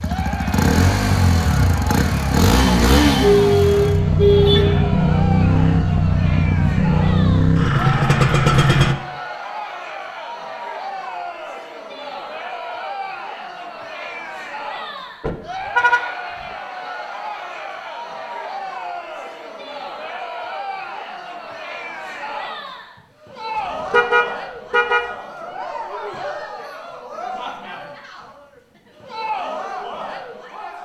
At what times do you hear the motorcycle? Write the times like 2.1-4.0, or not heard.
0.0-8.9.